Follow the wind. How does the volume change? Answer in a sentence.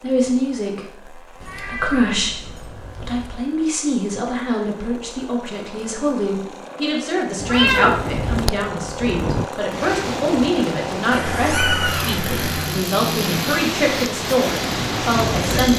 The volume of the wind goes down, then up.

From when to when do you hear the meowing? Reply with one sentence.
You can hear the meowing from 1.4 to 3.3 s, from 7.3 to 8.4 s and from 11.1 to 12.8 s.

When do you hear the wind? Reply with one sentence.
You can hear the wind from 7.8 to 15.7 s.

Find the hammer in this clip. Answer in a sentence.
You can't hear the hammer here.